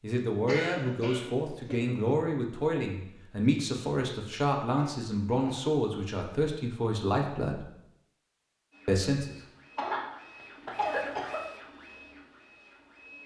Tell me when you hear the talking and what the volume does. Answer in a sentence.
The talking can be heard from 0.0 to 7.7 s, at a steady volume; and briefly from 8.8 to 9.3 s.